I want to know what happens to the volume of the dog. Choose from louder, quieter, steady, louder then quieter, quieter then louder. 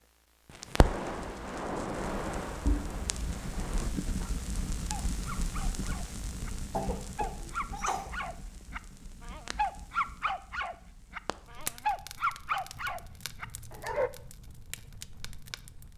louder.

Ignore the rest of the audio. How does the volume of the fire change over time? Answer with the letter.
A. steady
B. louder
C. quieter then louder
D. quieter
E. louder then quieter
D.